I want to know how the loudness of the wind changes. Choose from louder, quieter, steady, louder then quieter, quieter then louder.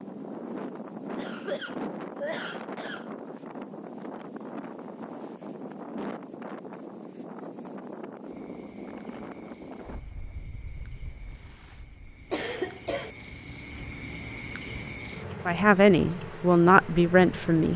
quieter.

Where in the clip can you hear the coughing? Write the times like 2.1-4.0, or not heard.
1.1-3.1, 12.3-13.1.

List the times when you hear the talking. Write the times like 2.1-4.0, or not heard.
15.4-17.7.